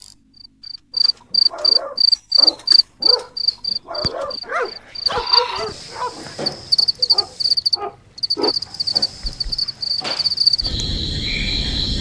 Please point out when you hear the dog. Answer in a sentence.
The dog can be heard from 0.9 to 8.6 s.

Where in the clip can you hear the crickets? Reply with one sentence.
The crickets can be heard from 0.0 to 11.9 s.